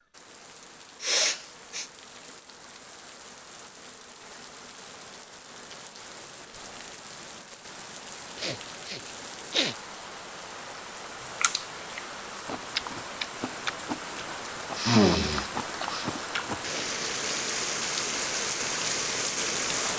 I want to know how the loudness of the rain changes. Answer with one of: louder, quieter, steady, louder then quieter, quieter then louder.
louder.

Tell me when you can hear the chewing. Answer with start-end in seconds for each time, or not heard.
11.4-16.9.